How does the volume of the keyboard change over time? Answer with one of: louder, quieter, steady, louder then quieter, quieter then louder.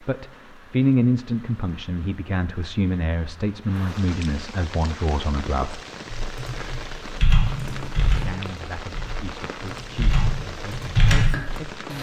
quieter then louder.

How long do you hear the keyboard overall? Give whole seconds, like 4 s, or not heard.
6 s.